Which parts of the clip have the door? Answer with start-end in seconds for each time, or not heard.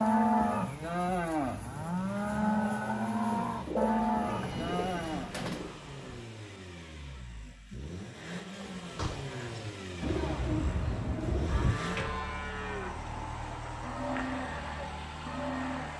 4.2-6.2, 8.8-9.4.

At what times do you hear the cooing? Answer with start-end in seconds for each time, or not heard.
3.3-5.8, 10.0-11.8.